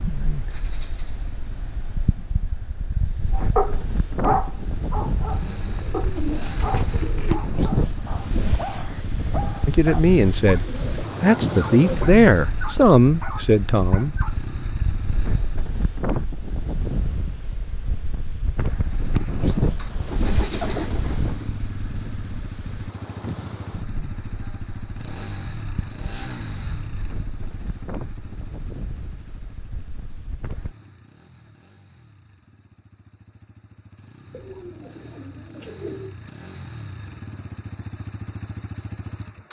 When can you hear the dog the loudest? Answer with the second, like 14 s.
4 s.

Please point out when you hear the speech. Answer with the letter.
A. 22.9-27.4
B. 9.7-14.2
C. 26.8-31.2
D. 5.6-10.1
B.